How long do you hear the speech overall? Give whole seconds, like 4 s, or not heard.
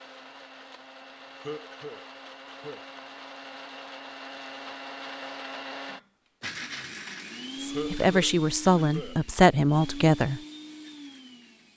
3 s.